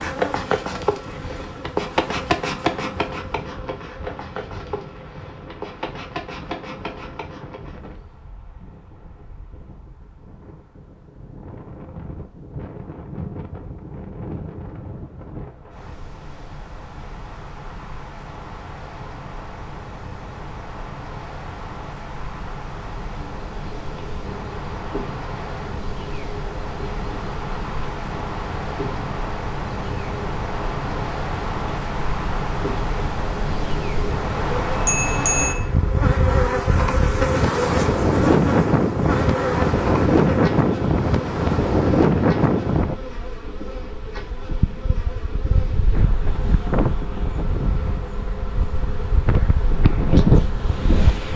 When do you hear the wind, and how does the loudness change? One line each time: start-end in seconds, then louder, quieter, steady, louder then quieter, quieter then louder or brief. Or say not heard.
0.1-51.3 louder.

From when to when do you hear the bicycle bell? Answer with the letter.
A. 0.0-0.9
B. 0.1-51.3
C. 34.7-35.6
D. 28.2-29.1
C.